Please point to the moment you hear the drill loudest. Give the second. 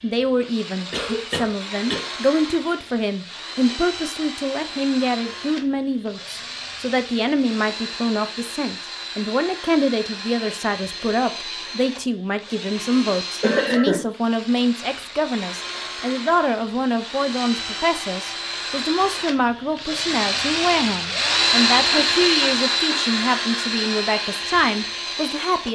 22 s.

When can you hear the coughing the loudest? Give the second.
14 s.